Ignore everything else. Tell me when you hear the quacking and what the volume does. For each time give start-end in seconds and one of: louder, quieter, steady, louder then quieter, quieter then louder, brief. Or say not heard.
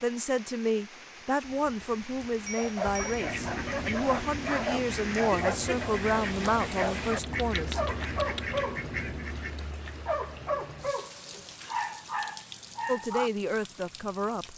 2.9-9.7 steady.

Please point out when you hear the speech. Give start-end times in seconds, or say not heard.
0.0-7.8, 12.8-14.5.